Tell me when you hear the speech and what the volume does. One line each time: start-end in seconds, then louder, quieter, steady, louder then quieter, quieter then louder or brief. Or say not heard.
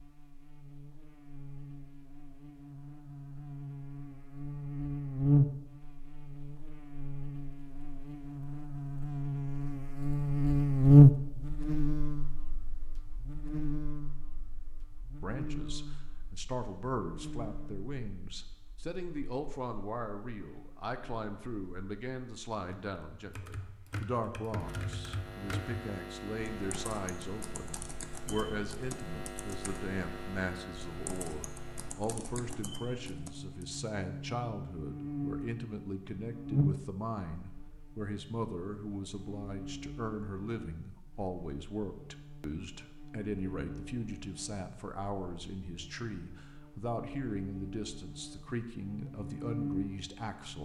15.2-50.6 steady.